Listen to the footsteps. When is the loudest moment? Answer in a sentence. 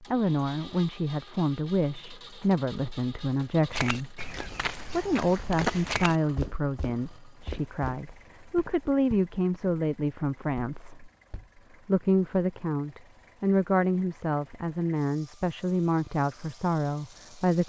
The loudest moment of the footsteps is at 6 seconds.